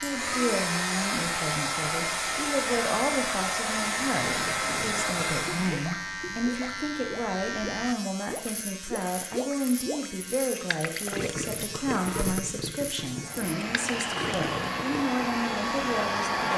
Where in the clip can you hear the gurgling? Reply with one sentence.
The gurgling can be heard from 3.9 to 15.2 s.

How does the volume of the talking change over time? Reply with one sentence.
The loudness of the talking stays about the same.